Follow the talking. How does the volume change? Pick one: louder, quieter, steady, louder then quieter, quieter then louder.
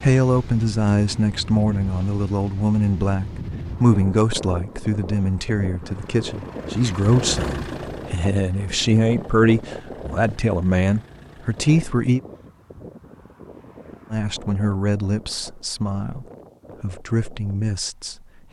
quieter.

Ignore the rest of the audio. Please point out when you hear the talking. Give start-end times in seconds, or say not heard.
0.0-12.2, 14.1-18.1.